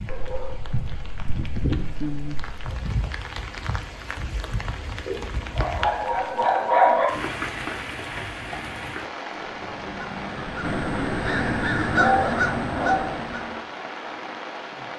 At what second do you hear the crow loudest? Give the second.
12 s.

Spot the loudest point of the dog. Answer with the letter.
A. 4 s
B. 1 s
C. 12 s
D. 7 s
D.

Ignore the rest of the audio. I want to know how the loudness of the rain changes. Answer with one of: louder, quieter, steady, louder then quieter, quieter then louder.
steady.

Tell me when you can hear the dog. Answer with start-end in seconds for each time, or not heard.
0.1-2.8, 5.0-7.0, 11.9-13.2.